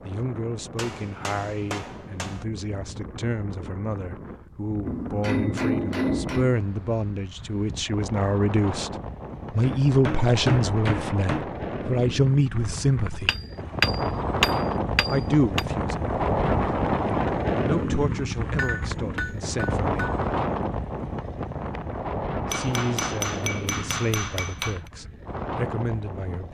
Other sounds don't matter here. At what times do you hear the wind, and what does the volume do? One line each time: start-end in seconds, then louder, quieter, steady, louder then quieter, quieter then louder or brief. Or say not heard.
0.0-26.4 louder then quieter.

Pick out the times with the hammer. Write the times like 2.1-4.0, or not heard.
0.8-2.5, 4.8-6.5, 9.6-11.5, 13.2-15.6, 18.5-20.2, 22.5-24.8.